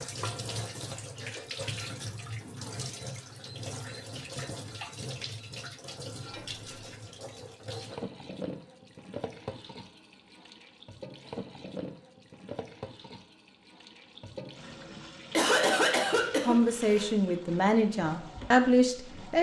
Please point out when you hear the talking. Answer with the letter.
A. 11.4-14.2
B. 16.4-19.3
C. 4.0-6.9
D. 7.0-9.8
B.